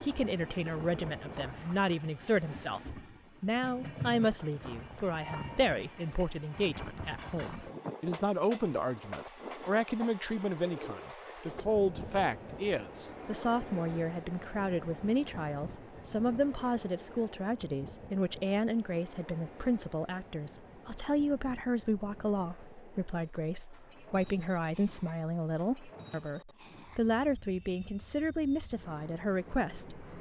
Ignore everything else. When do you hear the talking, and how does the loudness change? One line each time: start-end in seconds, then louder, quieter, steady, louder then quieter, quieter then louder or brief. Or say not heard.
0.0-30.0 steady.